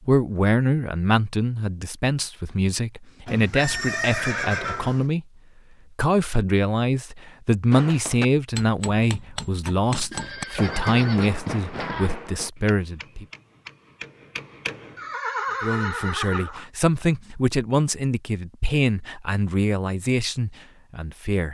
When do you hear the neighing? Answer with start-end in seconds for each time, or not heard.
3.2-5.0, 10.1-12.1, 14.9-16.6.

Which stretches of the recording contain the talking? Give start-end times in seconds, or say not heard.
0.1-5.2, 6.0-13.2, 15.6-21.4.